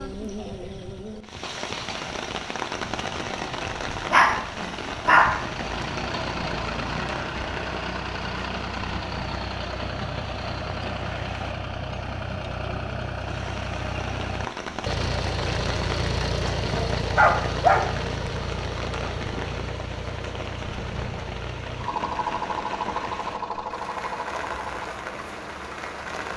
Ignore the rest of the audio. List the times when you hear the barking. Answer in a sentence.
The barking can be heard from 3.9 to 5.3 s and from 16.4 to 17.8 s.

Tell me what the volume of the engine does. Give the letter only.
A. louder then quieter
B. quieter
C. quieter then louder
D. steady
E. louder
E.